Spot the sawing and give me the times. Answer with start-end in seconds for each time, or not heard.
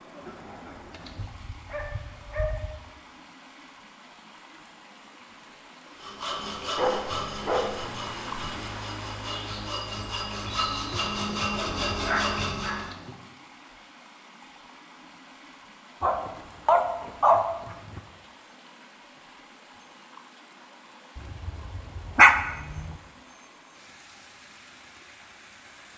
6.0-12.9.